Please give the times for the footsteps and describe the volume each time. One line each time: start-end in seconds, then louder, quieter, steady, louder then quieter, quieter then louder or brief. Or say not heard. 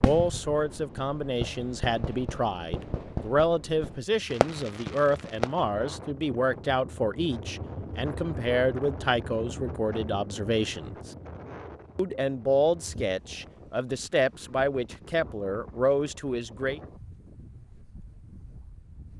not heard.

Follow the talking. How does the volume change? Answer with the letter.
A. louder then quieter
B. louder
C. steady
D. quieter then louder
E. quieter
C.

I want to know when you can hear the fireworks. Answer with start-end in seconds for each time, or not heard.
0.0-5.7.